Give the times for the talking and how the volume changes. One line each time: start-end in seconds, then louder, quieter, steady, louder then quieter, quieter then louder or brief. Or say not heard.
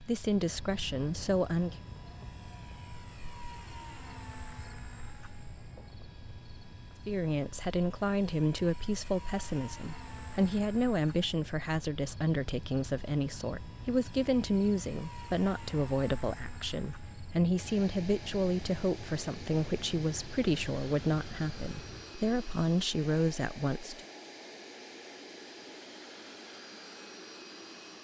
0.0-1.8 brief
7.0-24.0 steady.